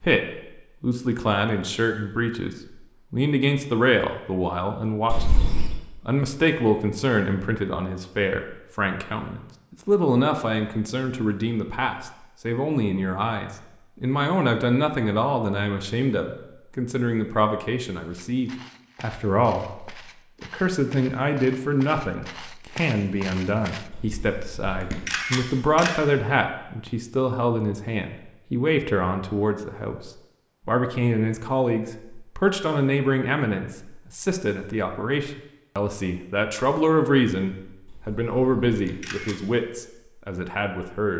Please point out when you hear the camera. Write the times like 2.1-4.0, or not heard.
5.0-5.8, 23.9-25.9, 37.9-39.4.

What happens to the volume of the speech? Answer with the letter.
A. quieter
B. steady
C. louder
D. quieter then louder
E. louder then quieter
B.